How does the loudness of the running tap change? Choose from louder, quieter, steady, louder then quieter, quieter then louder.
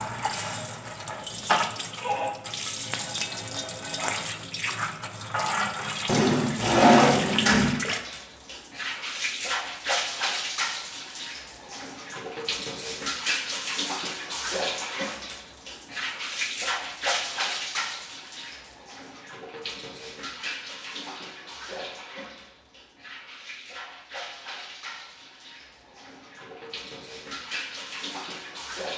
quieter.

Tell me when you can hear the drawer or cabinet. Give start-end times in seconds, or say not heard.
6.0-7.8.